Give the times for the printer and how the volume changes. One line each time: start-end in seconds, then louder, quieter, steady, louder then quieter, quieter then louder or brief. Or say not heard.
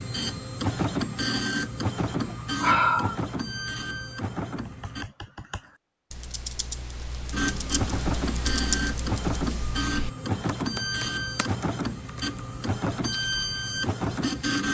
0.0-5.0 quieter
7.3-14.6 steady.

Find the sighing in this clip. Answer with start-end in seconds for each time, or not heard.
2.0-3.1.